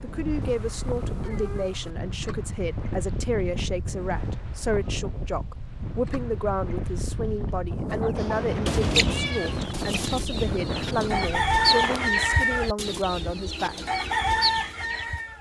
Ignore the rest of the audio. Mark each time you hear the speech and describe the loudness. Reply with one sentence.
You can hear the speech from 0.0 to 13.8 s, at a steady volume.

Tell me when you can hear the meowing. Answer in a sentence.
The meowing can be heard from 0.4 to 1.9 s and from 8.2 to 9.8 s.